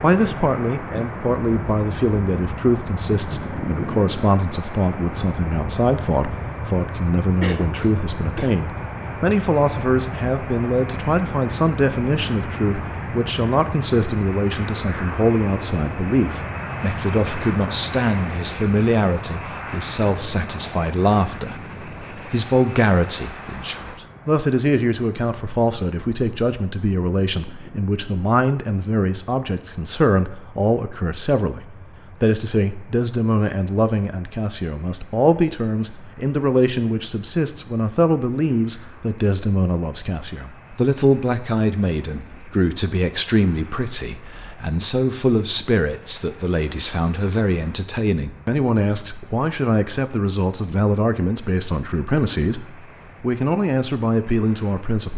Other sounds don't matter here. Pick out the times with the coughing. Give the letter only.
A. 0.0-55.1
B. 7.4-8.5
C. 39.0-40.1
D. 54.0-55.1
B.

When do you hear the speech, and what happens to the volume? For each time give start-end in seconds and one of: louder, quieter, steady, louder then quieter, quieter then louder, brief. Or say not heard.
0.0-55.1 steady.